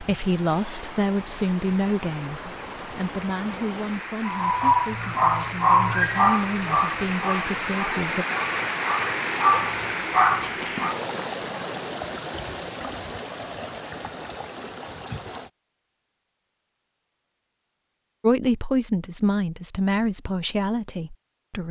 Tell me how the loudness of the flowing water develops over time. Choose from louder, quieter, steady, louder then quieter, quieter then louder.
louder then quieter.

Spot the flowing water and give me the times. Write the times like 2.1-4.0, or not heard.
0.0-15.5.